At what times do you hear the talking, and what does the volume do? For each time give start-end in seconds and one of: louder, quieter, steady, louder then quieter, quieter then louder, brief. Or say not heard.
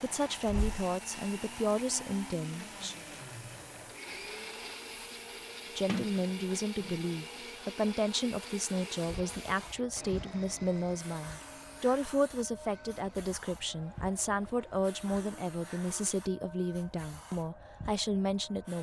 0.0-3.0 brief
5.8-18.7 steady.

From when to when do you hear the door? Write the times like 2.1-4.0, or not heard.
5.8-7.0.